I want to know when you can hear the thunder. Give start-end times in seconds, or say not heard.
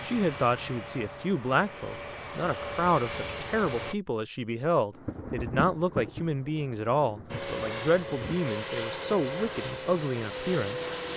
4.9-8.4.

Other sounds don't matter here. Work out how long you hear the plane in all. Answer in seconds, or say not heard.
8 s.